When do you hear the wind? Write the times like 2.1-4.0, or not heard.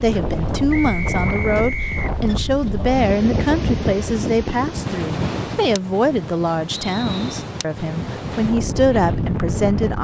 0.0-9.9.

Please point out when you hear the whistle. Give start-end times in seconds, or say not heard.
0.7-2.1, 6.8-7.3.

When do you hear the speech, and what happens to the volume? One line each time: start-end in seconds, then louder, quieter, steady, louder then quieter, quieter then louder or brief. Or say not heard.
0.0-9.9 steady.